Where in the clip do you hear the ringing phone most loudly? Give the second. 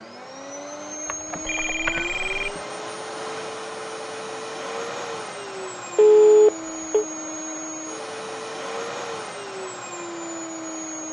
6 s.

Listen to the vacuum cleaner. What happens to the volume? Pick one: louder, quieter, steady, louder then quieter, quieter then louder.
steady.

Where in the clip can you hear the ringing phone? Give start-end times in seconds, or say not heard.
1.1-2.5, 6.0-7.0.